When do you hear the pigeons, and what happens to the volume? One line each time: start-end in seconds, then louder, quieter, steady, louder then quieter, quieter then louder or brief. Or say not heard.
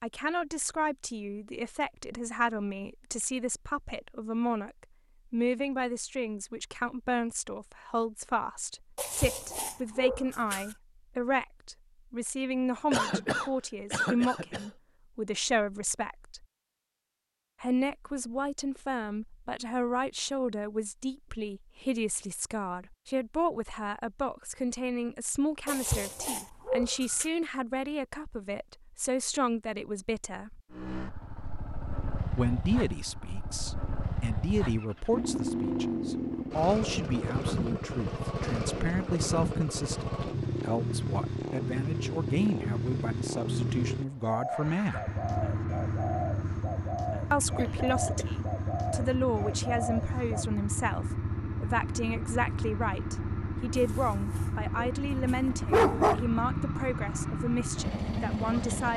44.2-50.5 steady.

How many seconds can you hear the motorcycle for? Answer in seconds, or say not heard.
28 s.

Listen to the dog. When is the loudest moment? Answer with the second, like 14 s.
56 s.